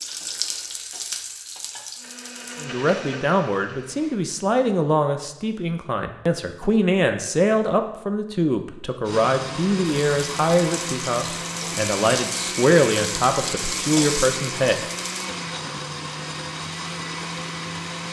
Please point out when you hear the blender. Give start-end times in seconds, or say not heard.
1.9-4.2, 9.1-18.0.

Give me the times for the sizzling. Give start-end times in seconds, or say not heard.
0.0-2.6, 9.8-15.3.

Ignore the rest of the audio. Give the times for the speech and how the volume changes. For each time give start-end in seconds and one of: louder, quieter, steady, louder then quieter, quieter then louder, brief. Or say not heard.
2.6-14.8 steady.